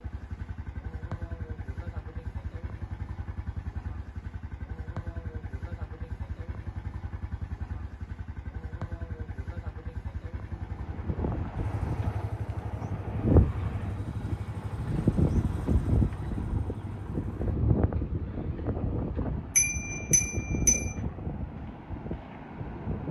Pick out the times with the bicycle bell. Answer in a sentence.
You can hear the bicycle bell from 19.6 to 20.9 s.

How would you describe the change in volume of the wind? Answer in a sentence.
The volume of the wind goes up, then down.